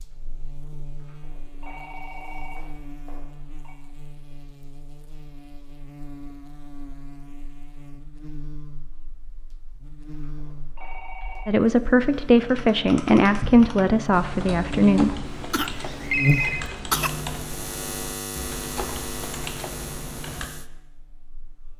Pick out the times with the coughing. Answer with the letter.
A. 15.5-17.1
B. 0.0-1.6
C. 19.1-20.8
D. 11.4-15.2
A.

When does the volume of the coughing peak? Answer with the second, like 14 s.
17 s.